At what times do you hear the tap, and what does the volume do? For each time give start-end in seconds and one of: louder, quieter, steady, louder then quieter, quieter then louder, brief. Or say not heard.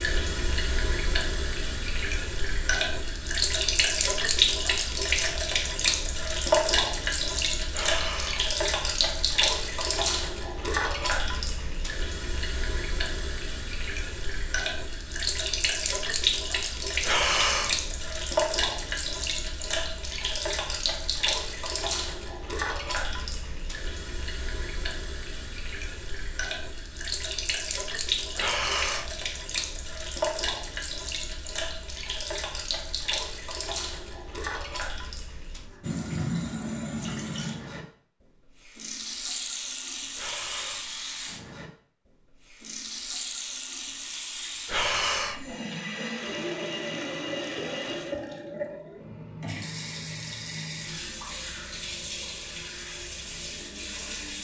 0.0-54.4 quieter.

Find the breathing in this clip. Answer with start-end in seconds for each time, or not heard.
7.7-8.5, 17.1-17.9, 28.4-29.2, 40.1-41.0, 44.6-45.5.